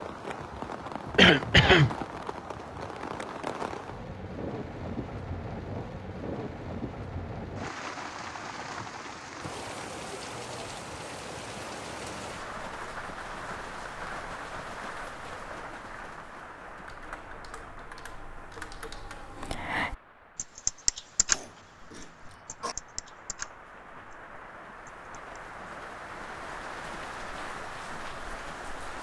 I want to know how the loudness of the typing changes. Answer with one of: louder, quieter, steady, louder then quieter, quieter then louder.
louder then quieter.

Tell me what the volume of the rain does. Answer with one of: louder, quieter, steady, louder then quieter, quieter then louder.
quieter then louder.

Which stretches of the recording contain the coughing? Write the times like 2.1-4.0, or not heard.
1.1-1.9, 21.3-22.8.